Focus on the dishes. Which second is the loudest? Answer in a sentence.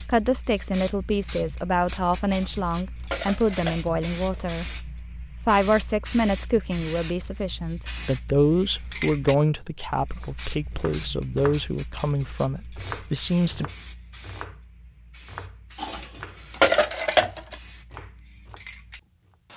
The loudest moment of the dishes is at 17 seconds.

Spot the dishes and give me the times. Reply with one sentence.
You can hear the dishes from 2.2 to 4.4 s and from 15.8 to 17.6 s.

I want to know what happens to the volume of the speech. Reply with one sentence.
The volume of the speech stays about the same.